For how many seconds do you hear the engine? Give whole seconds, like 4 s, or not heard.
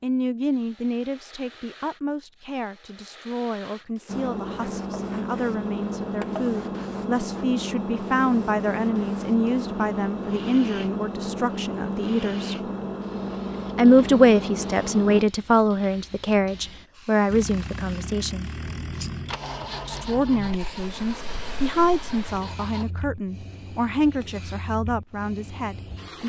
17 s.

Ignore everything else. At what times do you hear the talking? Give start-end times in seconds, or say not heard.
0.0-12.6, 13.8-18.5, 19.9-26.2.